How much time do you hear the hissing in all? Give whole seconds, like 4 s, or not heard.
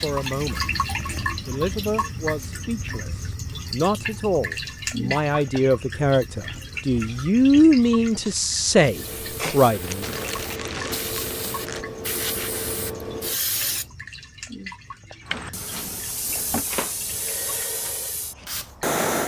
9 s.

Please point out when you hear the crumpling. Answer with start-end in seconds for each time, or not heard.
9.8-11.8.